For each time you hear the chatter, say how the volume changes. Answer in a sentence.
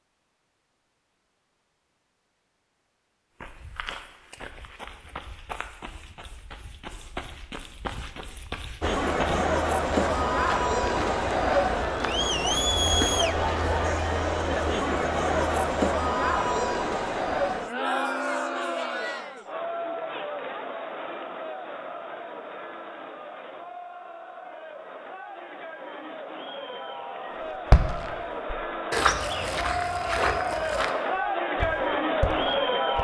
The chatter can be heard from 8.8 to 33.0 s, getting quieter then louder.